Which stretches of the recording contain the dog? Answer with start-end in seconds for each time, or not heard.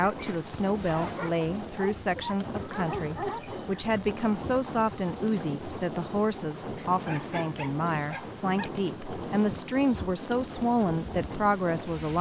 0.9-3.5, 6.8-8.7.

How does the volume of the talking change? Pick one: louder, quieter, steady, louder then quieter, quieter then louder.
steady.